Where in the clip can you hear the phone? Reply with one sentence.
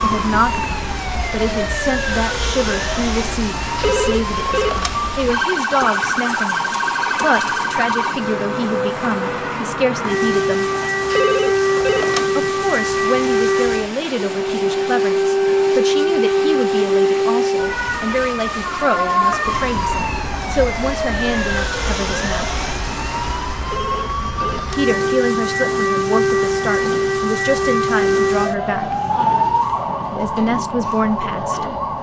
The phone can be heard from 3.8 to 5.0 s, from 11.1 to 12.3 s and from 23.6 to 24.8 s.